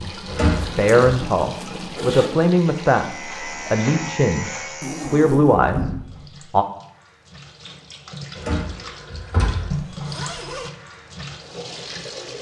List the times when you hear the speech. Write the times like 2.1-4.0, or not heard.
0.0-6.7.